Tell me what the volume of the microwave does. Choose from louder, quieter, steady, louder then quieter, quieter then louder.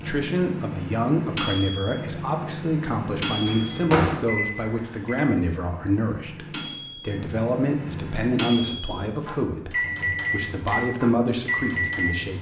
quieter then louder.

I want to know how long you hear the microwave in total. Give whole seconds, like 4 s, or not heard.
12 s.